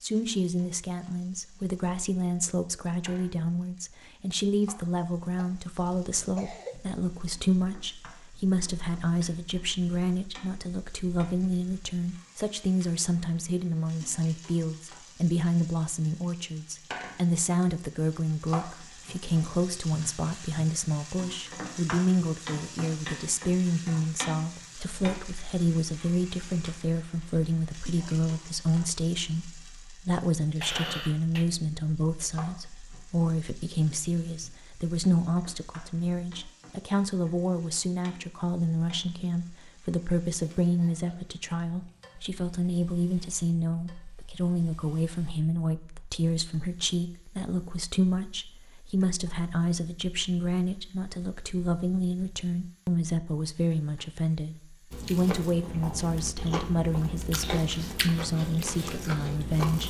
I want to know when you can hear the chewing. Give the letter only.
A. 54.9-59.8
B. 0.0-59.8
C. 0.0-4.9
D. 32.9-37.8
A.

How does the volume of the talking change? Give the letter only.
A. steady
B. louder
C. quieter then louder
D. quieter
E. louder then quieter
A.